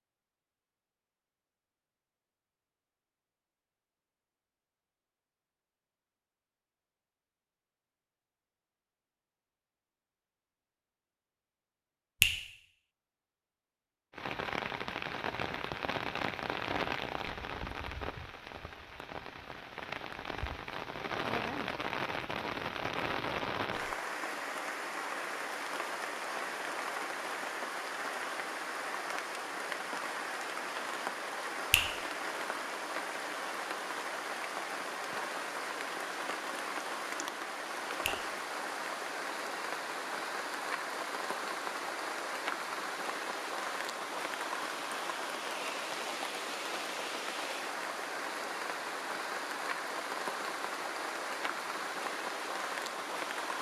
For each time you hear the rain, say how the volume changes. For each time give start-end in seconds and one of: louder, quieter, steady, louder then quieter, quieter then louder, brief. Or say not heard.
14.1-53.5 steady.